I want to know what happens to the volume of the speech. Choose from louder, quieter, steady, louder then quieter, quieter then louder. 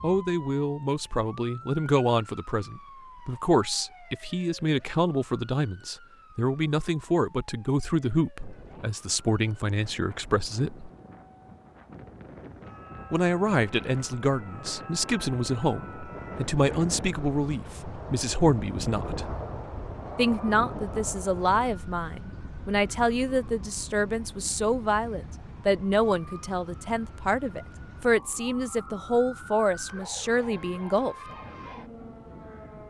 steady.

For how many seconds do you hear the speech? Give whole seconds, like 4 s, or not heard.
28 s.